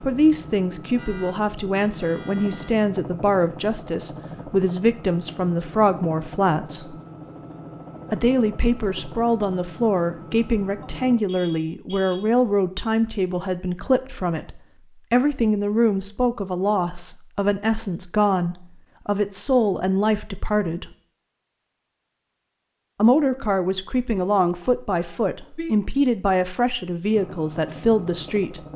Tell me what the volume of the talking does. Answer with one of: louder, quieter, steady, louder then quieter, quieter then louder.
steady.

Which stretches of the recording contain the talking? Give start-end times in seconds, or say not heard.
0.0-7.0, 8.1-20.9, 22.9-28.6.